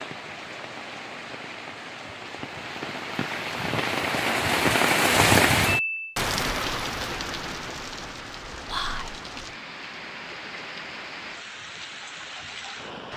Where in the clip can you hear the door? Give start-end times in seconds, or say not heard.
not heard.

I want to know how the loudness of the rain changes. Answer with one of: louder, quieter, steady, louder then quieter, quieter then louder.
louder then quieter.